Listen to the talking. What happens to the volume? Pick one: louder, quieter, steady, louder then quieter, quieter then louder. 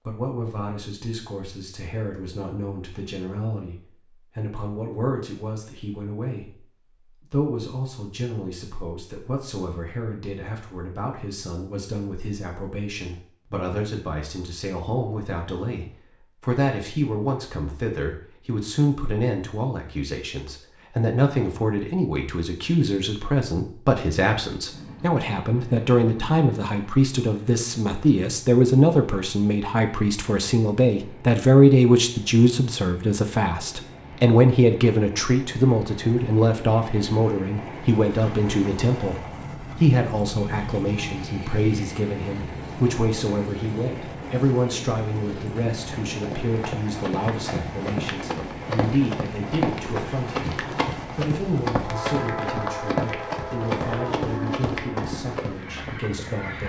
louder then quieter.